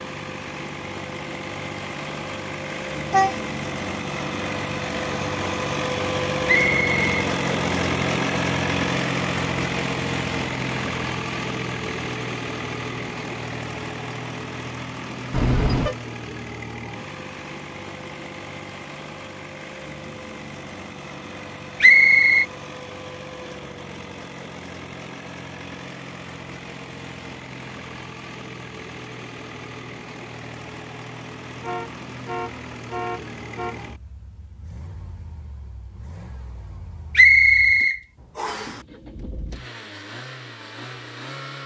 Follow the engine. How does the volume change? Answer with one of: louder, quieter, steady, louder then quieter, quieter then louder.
quieter.